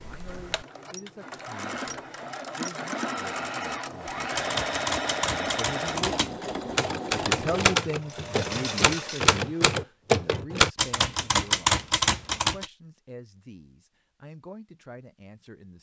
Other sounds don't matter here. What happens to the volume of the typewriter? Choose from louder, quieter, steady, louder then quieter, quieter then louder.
louder.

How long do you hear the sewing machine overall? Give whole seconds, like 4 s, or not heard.
10 s.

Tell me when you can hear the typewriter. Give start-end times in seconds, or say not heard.
4.3-12.7.